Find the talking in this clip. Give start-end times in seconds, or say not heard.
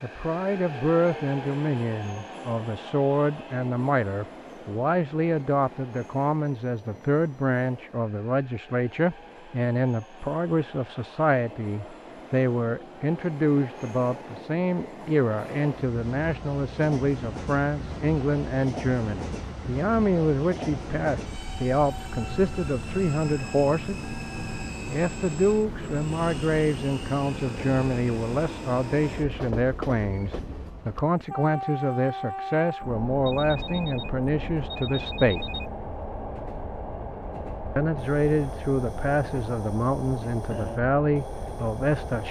0.0-24.0, 24.9-35.4, 37.8-42.2.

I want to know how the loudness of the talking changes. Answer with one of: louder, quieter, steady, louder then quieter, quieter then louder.
steady.